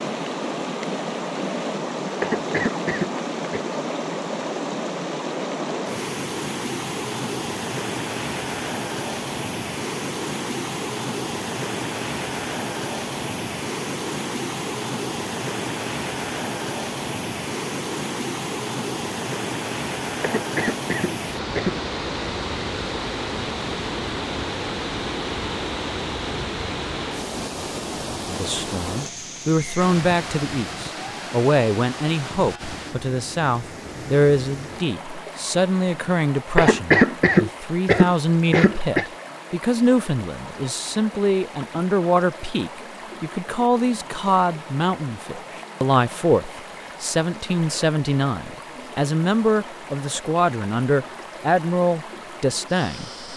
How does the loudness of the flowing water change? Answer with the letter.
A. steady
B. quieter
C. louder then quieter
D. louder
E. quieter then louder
B.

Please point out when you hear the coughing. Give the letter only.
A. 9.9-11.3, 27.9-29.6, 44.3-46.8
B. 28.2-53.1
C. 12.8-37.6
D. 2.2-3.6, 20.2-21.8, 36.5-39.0
D.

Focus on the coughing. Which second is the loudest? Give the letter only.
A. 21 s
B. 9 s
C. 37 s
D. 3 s
C.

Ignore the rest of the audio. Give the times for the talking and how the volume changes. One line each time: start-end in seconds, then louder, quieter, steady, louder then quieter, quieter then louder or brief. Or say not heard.
28.2-53.1 steady.